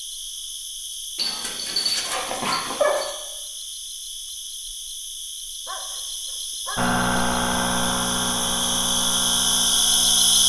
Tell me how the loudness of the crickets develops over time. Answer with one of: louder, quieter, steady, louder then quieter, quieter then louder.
louder.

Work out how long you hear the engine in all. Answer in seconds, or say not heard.
4 s.